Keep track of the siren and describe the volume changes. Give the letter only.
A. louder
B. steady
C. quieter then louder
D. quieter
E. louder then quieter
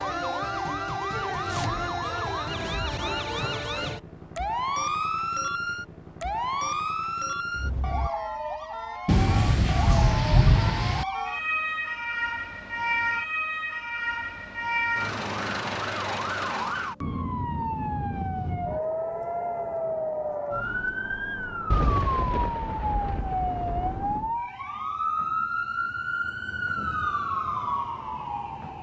B.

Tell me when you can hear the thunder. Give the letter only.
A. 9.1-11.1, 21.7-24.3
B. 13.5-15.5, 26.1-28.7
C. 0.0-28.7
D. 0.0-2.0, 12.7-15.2
A.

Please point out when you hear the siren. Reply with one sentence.
The siren can be heard from 0.0 to 28.7 s.